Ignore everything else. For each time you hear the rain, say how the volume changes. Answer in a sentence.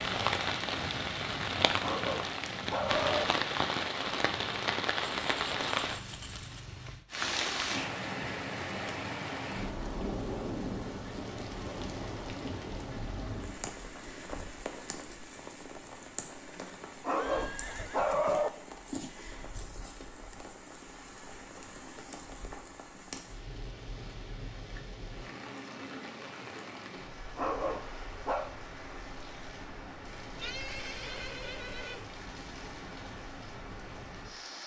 The rain can be heard from 0.0 to 34.6 s, getting quieter.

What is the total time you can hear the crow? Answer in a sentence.
The crow can't be heard in this clip.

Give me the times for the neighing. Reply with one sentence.
The neighing can be heard from 5.2 to 6.6 s, from 17.1 to 18.4 s and from 30.4 to 32.0 s.